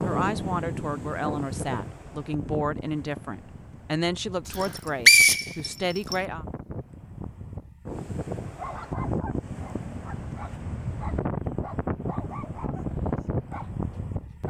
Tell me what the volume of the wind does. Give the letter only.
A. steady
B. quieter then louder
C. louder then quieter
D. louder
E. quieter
B.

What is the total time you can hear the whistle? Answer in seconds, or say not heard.
2 s.